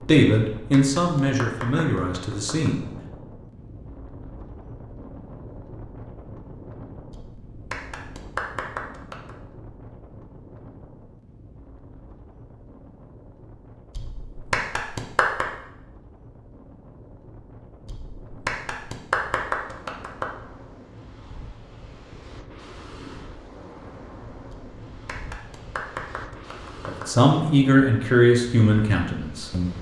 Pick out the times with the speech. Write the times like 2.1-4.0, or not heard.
0.0-2.8, 26.9-29.7.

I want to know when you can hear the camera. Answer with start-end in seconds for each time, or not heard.
not heard.